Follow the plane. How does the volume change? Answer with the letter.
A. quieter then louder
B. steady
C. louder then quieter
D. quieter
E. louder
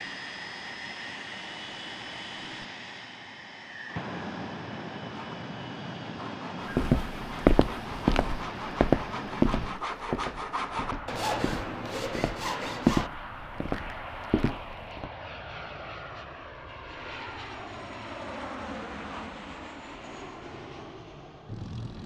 B.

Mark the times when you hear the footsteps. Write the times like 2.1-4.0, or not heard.
6.7-15.1.